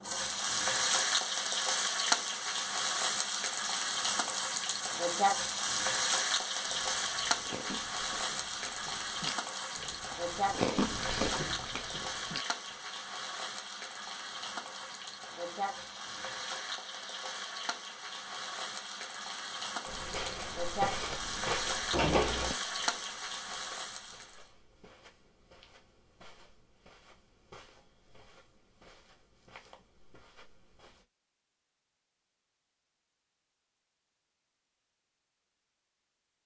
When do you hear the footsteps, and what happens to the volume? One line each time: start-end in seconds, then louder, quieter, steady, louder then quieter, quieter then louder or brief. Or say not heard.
19.9-31.1 quieter.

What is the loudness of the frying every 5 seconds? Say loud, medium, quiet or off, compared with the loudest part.
loud, loud, medium, medium, medium, off, off, off.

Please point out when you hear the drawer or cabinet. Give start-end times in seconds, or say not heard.
21.9-22.6.